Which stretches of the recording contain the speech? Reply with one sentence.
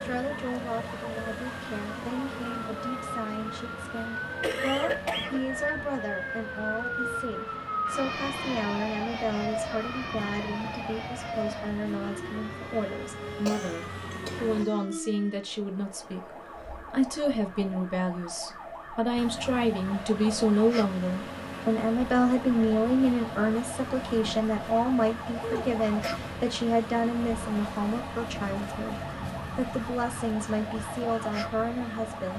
The speech can be heard from 0.0 to 16.3 s and from 16.9 to 32.3 s.